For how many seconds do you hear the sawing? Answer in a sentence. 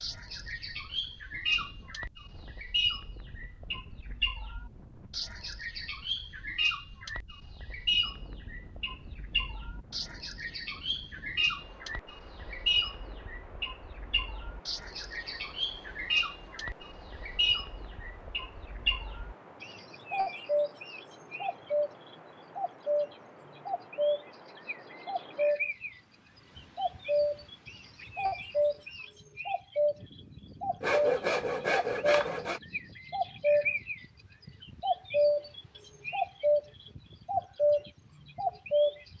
The sawing can be heard for 2 seconds in total.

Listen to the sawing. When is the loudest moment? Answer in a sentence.
The loudest moment of the sawing is at 31 seconds.